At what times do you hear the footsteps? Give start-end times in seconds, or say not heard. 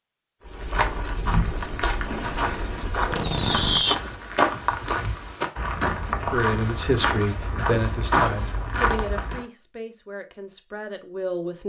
0.5-9.4.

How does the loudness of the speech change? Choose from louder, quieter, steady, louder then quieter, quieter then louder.
quieter.